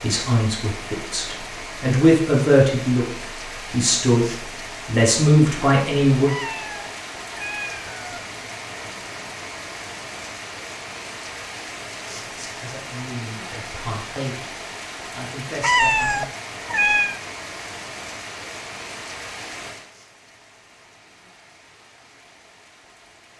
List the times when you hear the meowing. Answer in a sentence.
You can hear the meowing from 6.2 to 8.2 s and from 15.6 to 17.2 s.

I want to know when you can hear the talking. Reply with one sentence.
You can hear the talking from 0.0 to 6.3 s, from 12.2 to 14.5 s and from 15.1 to 16.2 s.